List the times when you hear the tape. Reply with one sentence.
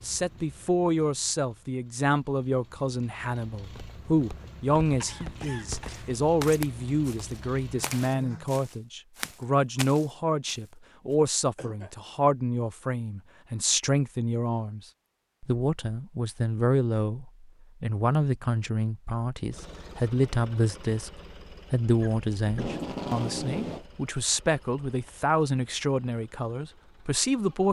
The tape can be heard from 22.4 to 23.9 s.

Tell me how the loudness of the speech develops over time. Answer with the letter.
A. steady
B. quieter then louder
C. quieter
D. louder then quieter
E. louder
A.